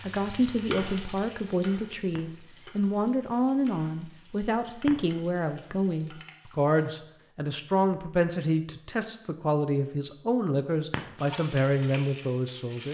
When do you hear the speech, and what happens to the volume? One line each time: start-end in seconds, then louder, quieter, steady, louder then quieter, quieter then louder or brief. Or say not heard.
0.0-12.8 steady.